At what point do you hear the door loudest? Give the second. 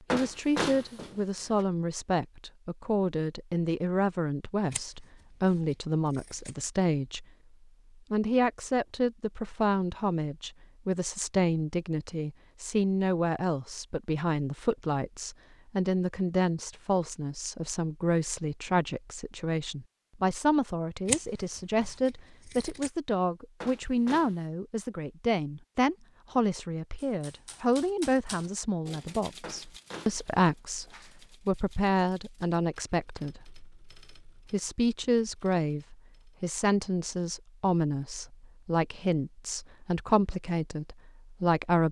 1 s.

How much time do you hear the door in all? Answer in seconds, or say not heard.
4 s.